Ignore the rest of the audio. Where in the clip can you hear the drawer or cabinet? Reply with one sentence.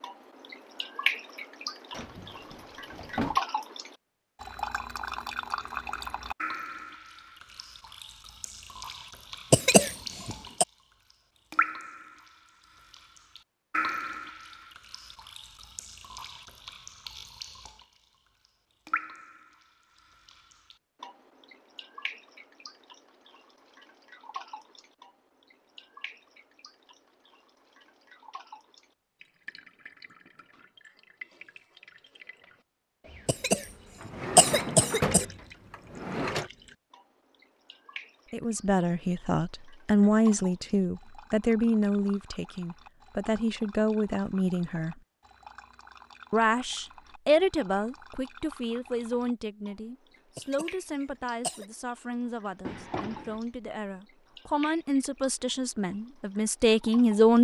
The drawer or cabinet can be heard from 1.9 to 3.4 s, from 34.0 to 36.5 s and from 52.6 to 53.8 s.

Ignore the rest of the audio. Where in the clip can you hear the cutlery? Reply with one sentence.
The cutlery can't be heard in this clip.